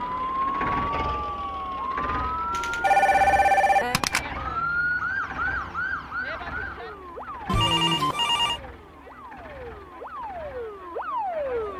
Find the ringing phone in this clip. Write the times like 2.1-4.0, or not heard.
2.5-4.2, 7.5-8.6.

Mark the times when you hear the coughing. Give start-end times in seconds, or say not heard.
not heard.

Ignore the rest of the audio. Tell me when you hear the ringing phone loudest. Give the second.
3 s.